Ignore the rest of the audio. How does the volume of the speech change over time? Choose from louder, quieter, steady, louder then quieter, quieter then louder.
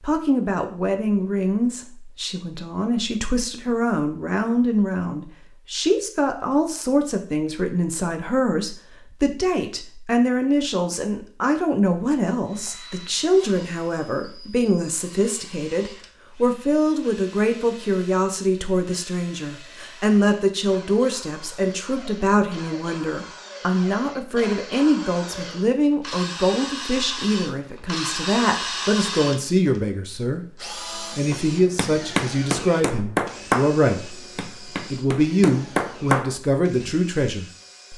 steady.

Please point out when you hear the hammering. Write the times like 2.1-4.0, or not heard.
31.3-37.0.